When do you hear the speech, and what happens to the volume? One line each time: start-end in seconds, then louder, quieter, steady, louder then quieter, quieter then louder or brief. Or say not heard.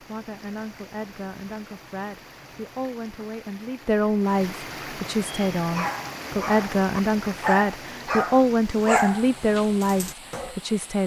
0.0-11.0 louder.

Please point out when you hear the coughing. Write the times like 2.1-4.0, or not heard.
not heard.